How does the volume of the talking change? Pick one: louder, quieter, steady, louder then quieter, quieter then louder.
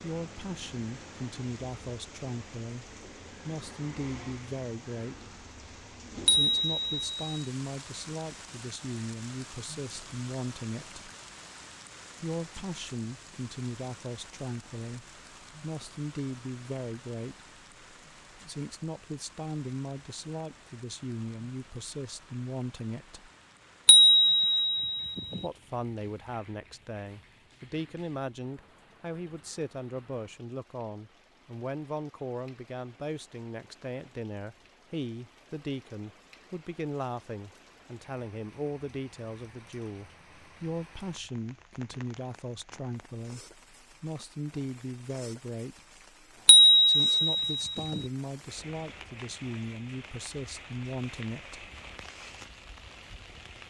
steady.